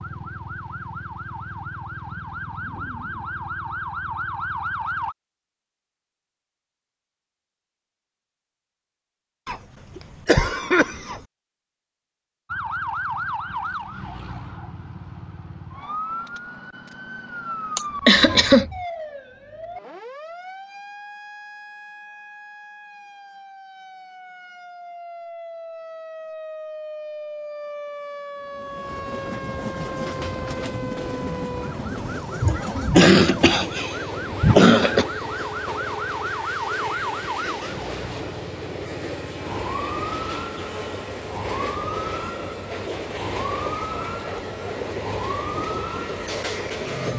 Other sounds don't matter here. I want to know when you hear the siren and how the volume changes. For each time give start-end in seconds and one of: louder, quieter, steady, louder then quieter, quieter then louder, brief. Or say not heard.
0.0-5.2 louder
12.4-47.1 quieter then louder.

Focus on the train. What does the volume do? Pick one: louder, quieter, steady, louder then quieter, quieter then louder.
steady.